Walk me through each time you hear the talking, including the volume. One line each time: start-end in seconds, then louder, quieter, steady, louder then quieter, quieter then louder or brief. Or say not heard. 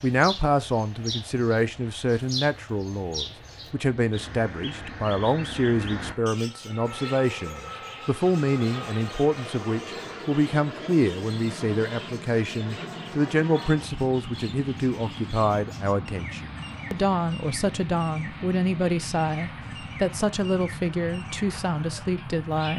0.0-22.7 steady.